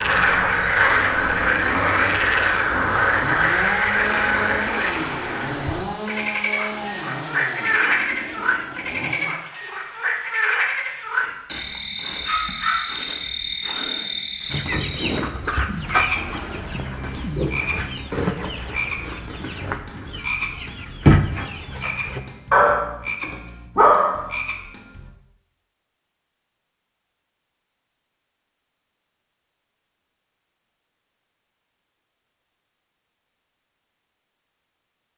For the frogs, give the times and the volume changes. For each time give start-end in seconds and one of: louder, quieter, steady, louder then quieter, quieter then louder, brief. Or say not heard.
0.0-25.1 quieter.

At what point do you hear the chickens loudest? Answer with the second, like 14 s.
21 s.